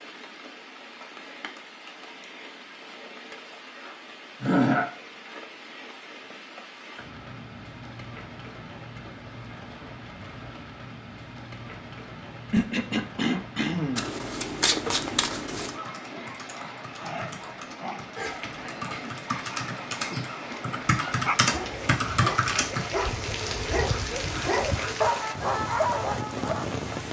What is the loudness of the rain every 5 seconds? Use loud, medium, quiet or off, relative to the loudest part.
medium, medium, medium, medium, loud, loud.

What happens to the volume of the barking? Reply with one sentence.
The volume of the barking goes up.